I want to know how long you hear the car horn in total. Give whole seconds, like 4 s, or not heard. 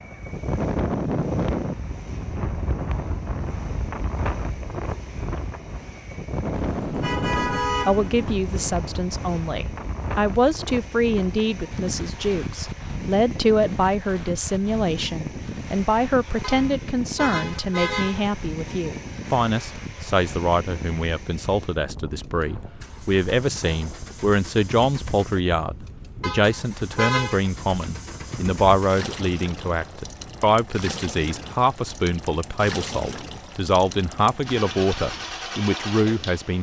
5 s.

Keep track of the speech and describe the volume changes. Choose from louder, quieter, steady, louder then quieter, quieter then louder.
steady.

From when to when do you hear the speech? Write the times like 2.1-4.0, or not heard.
7.8-36.5.